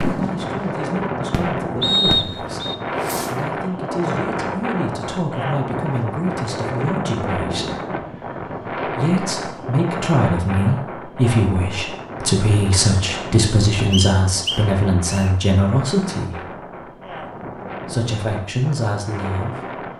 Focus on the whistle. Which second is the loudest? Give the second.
2 s.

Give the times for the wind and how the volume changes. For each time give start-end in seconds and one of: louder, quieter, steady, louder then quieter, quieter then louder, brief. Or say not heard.
0.0-19.9 quieter.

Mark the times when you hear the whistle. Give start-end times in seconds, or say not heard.
1.8-2.8, 13.9-15.3.